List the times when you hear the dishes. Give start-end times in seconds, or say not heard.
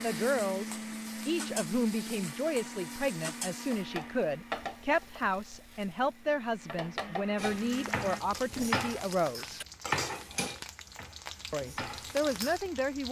7.3-12.6.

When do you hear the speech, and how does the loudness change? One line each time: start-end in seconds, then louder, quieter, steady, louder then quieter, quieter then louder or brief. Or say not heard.
0.0-9.7 steady
11.5-13.0 brief.